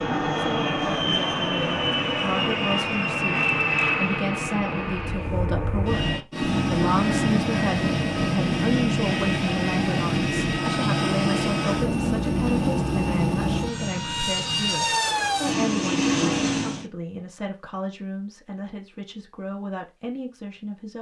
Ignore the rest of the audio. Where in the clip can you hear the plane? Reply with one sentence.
The plane can be heard from 0.0 to 16.9 s.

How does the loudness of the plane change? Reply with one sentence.
The volume of the plane stays about the same.